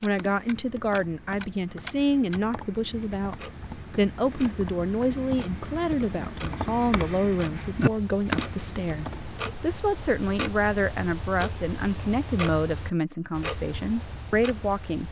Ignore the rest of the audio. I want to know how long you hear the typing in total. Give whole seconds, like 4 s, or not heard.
10 s.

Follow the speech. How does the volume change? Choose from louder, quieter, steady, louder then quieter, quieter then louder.
steady.